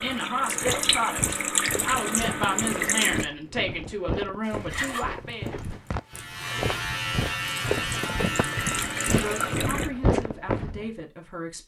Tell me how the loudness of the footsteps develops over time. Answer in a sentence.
The loudness of the footsteps goes up.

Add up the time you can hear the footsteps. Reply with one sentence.
The footsteps can be heard for 11 seconds in total.